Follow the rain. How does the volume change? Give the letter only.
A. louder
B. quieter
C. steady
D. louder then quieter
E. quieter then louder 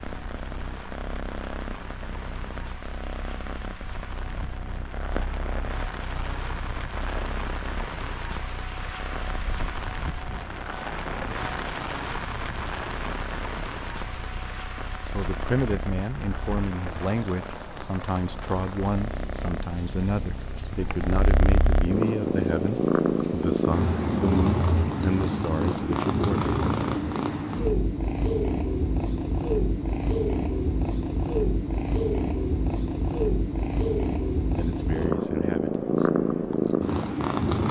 D.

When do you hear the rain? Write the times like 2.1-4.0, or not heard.
0.0-24.2.